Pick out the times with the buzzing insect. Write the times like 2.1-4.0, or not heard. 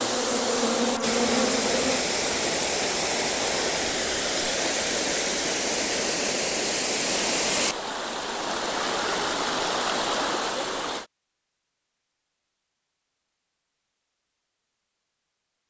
0.0-2.0.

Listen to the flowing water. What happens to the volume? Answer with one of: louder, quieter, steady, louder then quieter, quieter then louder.
steady.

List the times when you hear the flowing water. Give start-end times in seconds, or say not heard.
0.0-11.1.